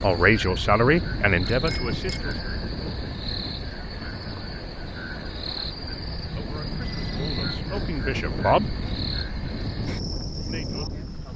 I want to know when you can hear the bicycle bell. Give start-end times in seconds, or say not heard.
1.4-2.4, 6.1-7.7.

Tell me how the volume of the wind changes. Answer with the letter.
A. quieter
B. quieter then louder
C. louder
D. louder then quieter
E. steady
B.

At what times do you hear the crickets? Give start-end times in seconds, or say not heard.
0.0-11.3.